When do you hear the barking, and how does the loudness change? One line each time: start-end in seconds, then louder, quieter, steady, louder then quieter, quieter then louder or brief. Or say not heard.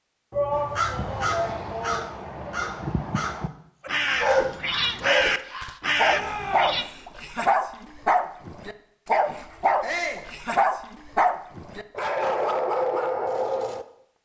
3.9-13.8 steady.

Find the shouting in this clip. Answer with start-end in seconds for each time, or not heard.
0.3-2.5, 6.0-6.8, 9.8-10.2.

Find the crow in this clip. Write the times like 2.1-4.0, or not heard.
0.5-6.8.